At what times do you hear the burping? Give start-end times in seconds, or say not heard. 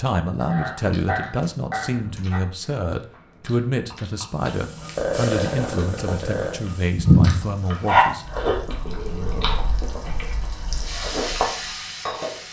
0.4-2.4, 5.0-6.6, 8.8-9.7.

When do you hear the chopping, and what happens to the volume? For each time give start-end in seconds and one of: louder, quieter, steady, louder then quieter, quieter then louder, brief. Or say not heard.
not heard.